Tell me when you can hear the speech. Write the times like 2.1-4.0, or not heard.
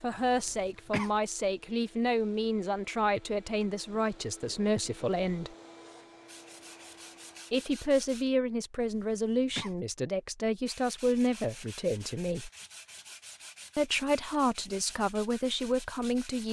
0.0-5.5, 7.5-12.5, 13.8-16.4.